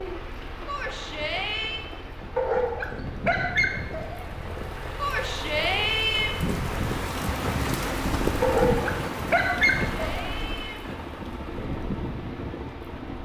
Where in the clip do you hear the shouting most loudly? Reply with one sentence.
The volume of the shouting peaks at 6 seconds.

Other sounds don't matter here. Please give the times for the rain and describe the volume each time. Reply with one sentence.
The rain can be heard from 0.0 to 13.2 s, getting louder then quieter.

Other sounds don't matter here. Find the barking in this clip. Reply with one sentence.
You can hear the barking from 2.4 to 4.2 s and from 8.4 to 10.3 s.